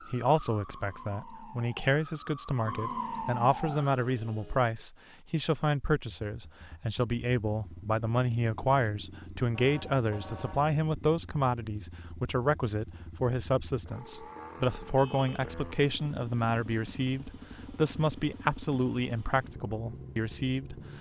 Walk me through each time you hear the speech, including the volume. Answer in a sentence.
You can hear the speech from 0.1 to 20.8 s, at a steady volume.